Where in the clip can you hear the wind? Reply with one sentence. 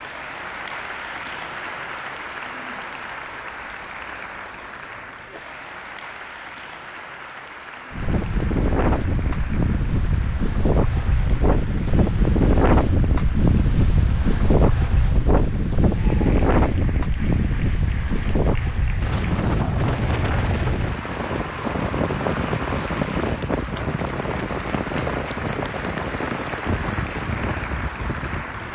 You can hear the wind from 7.9 to 28.7 s.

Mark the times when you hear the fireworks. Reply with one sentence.
You can't hear the fireworks here.